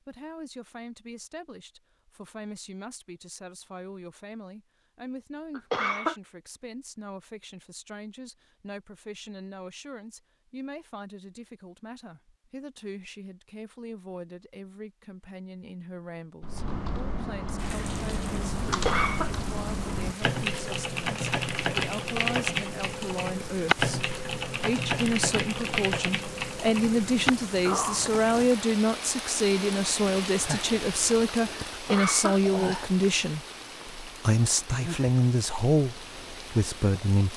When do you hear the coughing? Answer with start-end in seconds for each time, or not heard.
5.5-6.2, 18.6-19.3, 31.7-33.0.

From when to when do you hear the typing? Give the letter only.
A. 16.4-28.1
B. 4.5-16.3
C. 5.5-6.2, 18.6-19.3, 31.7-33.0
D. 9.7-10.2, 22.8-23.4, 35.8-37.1
A.